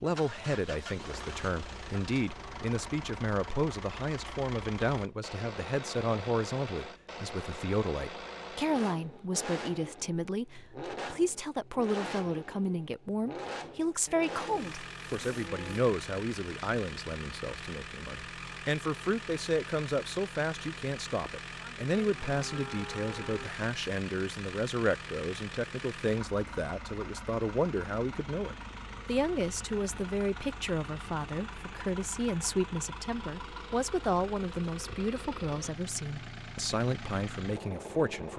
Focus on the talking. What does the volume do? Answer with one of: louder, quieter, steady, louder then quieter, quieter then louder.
steady.